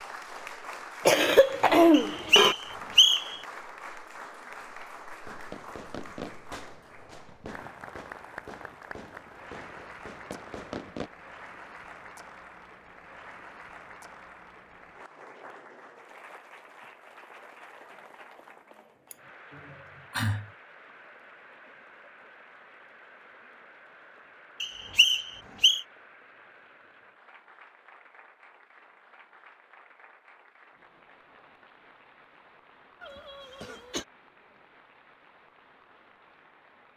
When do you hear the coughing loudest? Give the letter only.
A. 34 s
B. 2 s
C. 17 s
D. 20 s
B.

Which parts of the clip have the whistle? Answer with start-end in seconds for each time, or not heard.
1.9-3.4, 24.6-25.9.